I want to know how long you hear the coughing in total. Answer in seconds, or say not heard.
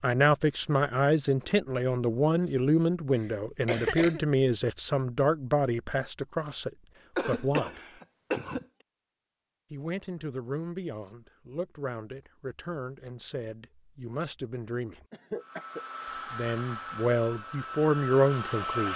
3 s.